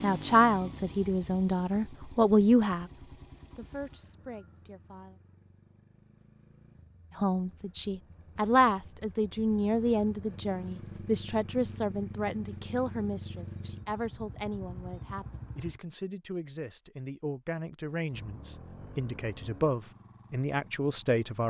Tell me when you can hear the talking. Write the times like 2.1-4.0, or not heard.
0.0-2.9, 3.5-5.2, 7.2-21.4.